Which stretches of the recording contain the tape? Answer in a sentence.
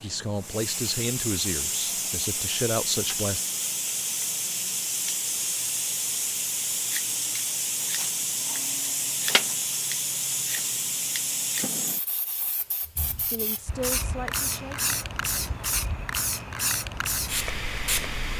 You can't hear the tape here.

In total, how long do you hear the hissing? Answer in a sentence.
The hissing can be heard for 18 seconds in total.